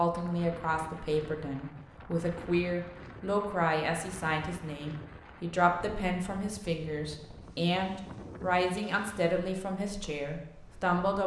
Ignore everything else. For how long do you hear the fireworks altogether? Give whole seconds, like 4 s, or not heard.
not heard.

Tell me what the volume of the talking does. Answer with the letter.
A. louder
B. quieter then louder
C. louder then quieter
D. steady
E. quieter
D.